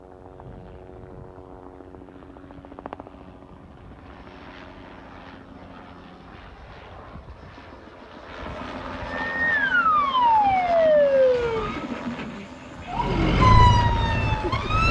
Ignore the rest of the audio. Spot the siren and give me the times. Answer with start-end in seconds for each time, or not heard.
9.3-11.8, 12.9-14.8.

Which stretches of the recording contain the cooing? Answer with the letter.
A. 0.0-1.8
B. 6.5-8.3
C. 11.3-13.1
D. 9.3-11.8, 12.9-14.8
C.